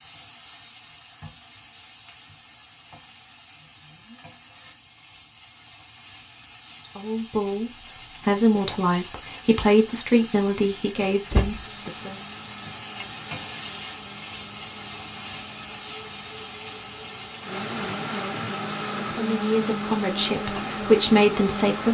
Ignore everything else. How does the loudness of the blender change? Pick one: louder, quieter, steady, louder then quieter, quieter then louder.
louder.